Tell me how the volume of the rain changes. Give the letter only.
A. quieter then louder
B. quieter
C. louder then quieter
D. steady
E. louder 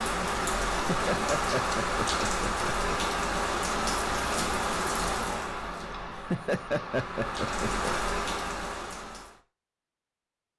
A.